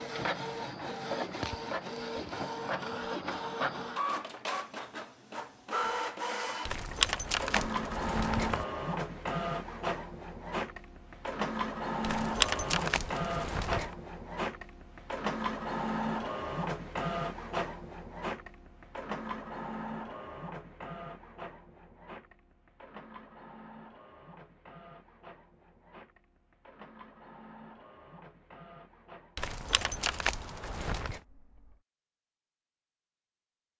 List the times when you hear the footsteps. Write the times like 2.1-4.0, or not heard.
not heard.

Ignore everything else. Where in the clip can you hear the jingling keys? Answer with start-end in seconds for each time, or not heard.
6.7-8.7, 12.0-13.9, 29.4-31.2.